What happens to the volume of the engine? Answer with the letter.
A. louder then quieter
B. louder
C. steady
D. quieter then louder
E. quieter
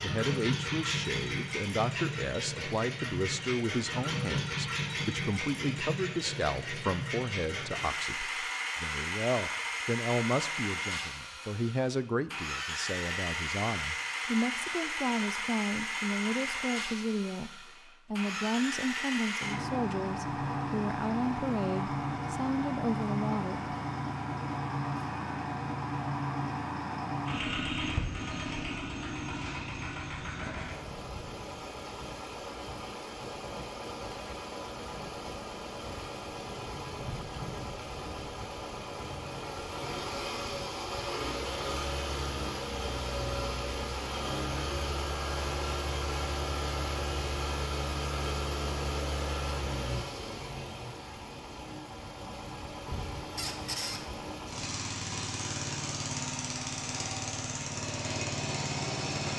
C.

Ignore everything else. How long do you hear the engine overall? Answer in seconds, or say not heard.
59 s.